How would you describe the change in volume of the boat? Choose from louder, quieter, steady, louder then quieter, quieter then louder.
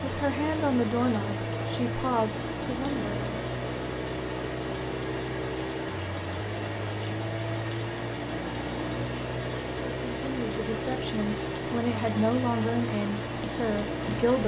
steady.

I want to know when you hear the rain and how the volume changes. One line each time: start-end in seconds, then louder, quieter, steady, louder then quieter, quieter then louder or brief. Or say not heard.
0.0-14.4 steady.